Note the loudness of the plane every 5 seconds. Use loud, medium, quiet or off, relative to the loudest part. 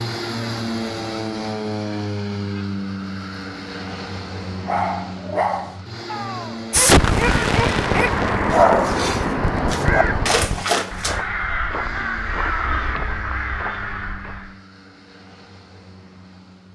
loud, medium, quiet, quiet.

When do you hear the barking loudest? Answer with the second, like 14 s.
9 s.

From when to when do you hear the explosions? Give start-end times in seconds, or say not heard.
6.7-10.7.